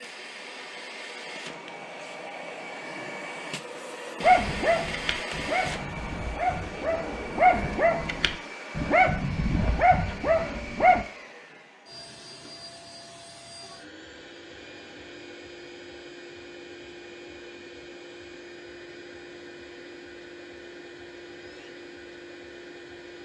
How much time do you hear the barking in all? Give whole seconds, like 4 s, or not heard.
7 s.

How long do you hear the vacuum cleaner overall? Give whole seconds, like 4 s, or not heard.
23 s.